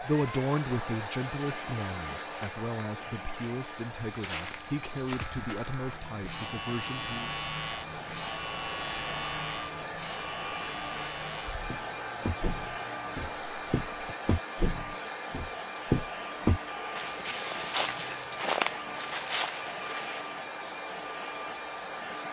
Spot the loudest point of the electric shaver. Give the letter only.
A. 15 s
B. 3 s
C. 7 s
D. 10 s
C.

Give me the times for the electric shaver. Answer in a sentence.
You can hear the electric shaver from 5.1 to 14.2 s.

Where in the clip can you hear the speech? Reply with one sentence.
You can hear the speech from 0.0 to 7.3 s.